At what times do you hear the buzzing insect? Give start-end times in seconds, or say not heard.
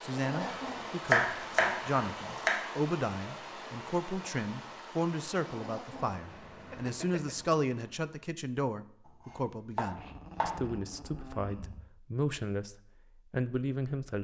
not heard.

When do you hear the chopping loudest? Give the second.
1 s.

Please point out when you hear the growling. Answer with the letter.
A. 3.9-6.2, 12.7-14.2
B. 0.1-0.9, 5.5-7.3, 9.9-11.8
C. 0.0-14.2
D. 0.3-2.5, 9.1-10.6
B.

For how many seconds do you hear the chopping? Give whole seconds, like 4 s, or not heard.
4 s.